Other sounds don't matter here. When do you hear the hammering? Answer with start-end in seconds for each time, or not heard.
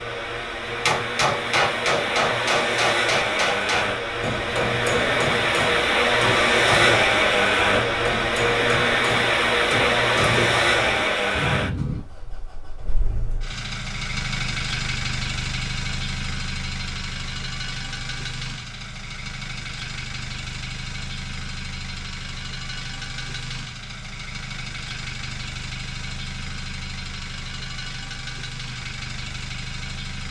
0.7-12.0.